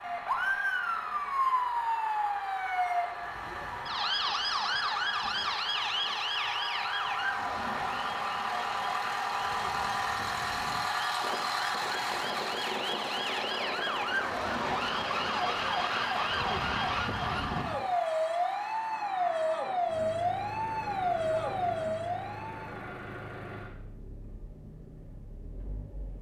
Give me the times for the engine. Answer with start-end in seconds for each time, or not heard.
0.0-26.1.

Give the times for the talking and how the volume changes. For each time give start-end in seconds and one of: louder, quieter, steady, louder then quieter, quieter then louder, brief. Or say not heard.
not heard.